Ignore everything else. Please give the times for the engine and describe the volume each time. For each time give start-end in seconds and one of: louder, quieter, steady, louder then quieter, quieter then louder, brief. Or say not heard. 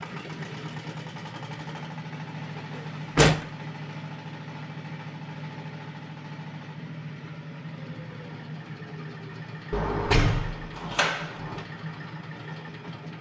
0.0-13.1 steady.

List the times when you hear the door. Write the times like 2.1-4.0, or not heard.
2.8-3.5, 9.7-11.6.